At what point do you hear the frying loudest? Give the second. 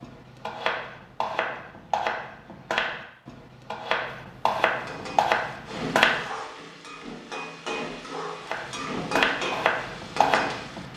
9 s.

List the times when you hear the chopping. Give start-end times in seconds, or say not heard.
0.0-6.2, 8.4-10.9.